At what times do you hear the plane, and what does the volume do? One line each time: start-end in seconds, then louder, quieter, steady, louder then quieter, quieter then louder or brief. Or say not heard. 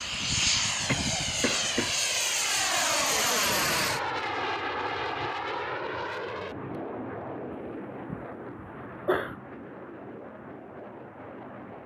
0.0-11.8 quieter.